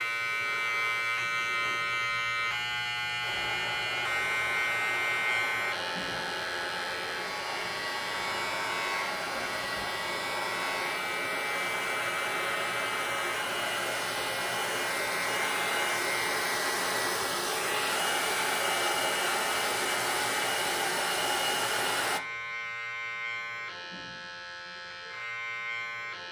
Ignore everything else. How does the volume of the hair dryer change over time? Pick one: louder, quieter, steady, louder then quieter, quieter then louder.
louder.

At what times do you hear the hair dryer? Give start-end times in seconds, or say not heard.
3.2-22.2.